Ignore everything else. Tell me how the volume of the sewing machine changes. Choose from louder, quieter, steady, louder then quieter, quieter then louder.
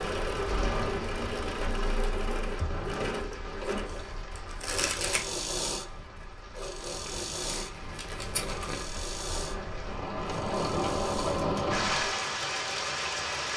quieter.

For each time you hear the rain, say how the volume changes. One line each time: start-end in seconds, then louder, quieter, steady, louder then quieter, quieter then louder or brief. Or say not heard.
0.0-13.5 quieter then louder.